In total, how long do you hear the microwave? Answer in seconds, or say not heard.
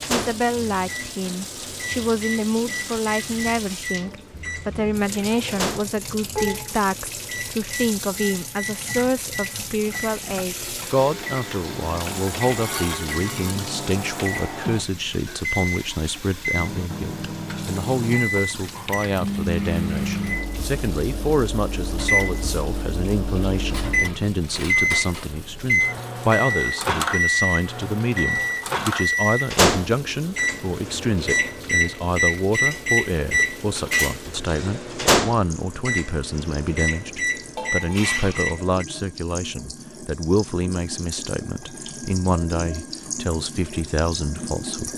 39 s.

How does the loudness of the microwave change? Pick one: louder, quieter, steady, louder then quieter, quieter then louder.
louder.